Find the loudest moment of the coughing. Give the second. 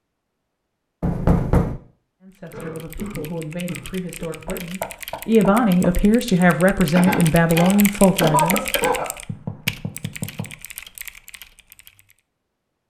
8 s.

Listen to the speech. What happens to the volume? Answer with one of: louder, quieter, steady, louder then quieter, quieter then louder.
louder.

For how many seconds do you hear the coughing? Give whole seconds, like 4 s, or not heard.
4 s.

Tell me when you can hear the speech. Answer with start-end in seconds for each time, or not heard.
2.2-8.6.